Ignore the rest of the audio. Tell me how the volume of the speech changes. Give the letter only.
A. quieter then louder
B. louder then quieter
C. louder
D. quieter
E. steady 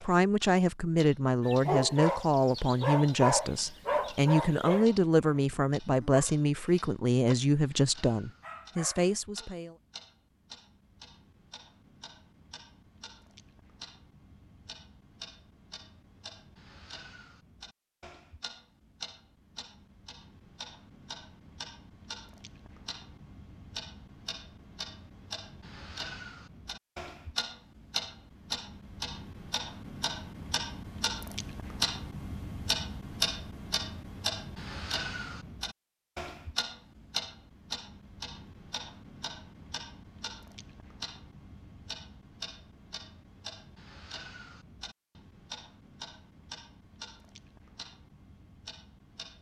E.